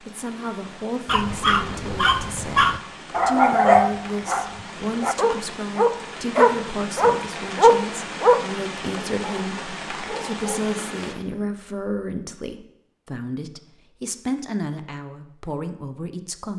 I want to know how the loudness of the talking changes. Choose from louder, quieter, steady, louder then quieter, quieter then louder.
steady.